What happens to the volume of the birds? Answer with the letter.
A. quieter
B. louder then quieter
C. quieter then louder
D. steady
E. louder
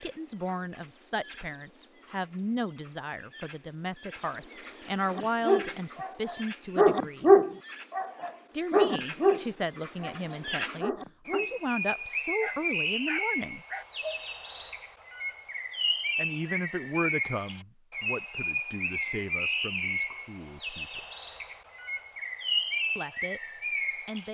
E.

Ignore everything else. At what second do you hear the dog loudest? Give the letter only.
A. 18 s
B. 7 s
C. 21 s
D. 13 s
B.